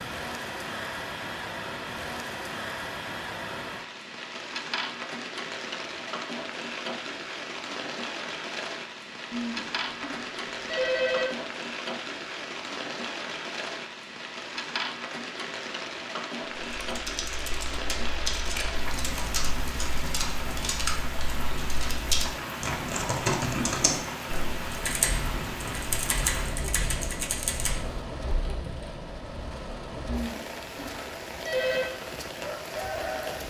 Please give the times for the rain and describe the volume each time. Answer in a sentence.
You can hear the rain from 0.0 to 33.4 s, at a steady volume.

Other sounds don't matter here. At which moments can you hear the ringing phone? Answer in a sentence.
The ringing phone can be heard from 9.3 to 11.3 s and from 30.1 to 31.9 s.